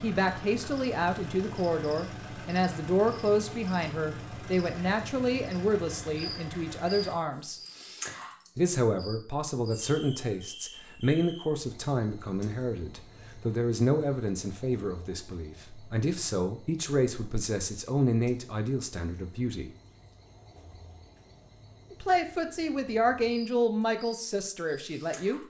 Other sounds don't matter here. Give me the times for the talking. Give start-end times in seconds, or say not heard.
0.0-7.6, 8.6-19.7, 21.9-25.4.